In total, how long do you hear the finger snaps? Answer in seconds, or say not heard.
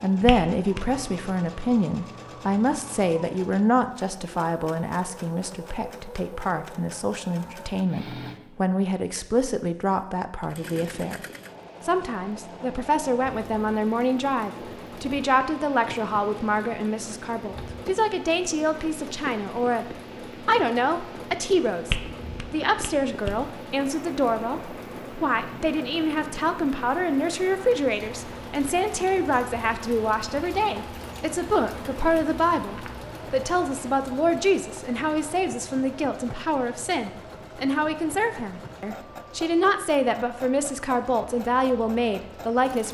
2 s.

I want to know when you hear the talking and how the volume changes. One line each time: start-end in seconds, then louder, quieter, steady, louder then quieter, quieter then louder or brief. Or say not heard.
0.0-42.8 steady.